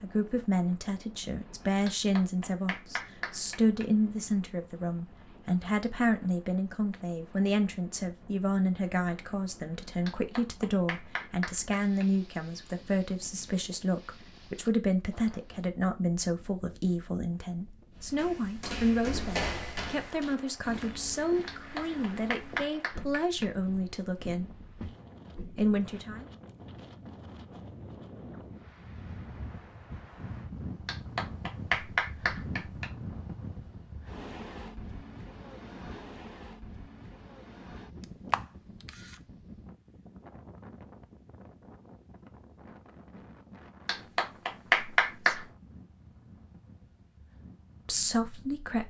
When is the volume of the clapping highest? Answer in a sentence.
The loudest moment of the clapping is at 45 seconds.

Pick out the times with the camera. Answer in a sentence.
The camera can be heard from 38.0 to 39.2 s.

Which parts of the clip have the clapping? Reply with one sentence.
You can hear the clapping from 1.9 to 3.9 s, from 10.1 to 12.1 s, from 21.4 to 23.4 s, from 30.9 to 32.9 s and from 43.9 to 45.5 s.